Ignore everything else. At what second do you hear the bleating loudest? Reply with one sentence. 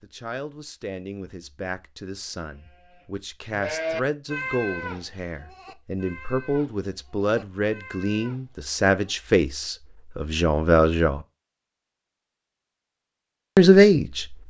The loudest moment of the bleating is at 4 seconds.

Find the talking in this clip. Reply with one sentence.
The talking can be heard from 0.0 to 11.2 s and from 13.6 to 14.3 s.